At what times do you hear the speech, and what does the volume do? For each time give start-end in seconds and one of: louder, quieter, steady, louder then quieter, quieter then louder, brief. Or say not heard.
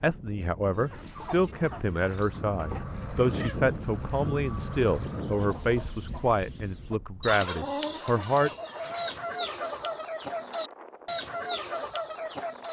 0.0-8.5 steady.